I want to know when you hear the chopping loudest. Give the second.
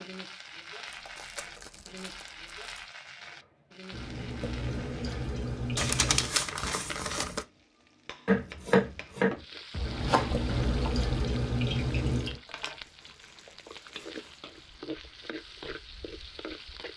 9 s.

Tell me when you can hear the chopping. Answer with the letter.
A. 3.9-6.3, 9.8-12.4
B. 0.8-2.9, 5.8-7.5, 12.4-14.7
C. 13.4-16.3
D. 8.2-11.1
D.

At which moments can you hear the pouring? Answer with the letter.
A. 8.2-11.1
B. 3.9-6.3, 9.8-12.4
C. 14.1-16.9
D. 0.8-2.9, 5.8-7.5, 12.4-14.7
B.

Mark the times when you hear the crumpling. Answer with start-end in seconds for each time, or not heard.
0.8-2.9, 5.8-7.5, 12.4-14.7.